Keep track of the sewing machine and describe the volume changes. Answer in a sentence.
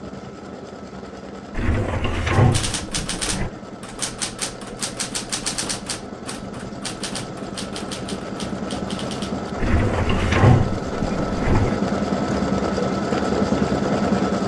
The volume of the sewing machine goes up.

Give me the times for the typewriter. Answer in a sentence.
The typewriter can be heard from 2.3 to 9.5 s.